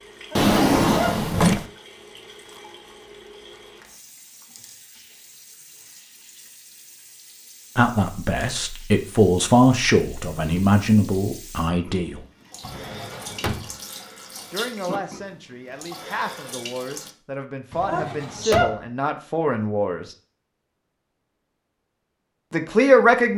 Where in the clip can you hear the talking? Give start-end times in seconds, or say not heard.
7.8-12.2, 14.5-20.1, 22.5-23.3.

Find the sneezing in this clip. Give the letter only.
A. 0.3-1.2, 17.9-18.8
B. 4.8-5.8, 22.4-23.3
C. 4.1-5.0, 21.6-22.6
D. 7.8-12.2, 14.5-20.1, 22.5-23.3
A.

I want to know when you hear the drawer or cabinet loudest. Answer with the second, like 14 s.
1 s.